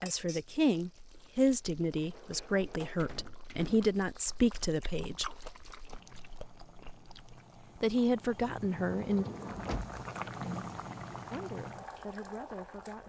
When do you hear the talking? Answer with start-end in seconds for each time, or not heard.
0.0-5.2, 7.8-9.2, 11.3-13.0.